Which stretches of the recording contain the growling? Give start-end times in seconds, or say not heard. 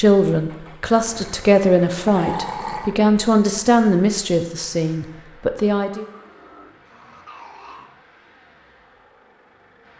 2.0-3.0, 6.0-8.0.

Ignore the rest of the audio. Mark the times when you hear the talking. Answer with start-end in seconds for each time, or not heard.
0.0-6.0.